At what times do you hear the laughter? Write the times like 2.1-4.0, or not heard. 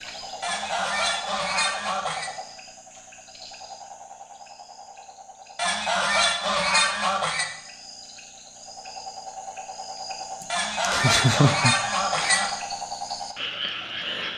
10.4-12.3.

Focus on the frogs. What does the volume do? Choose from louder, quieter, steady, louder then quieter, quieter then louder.
quieter then louder.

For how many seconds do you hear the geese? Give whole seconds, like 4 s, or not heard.
6 s.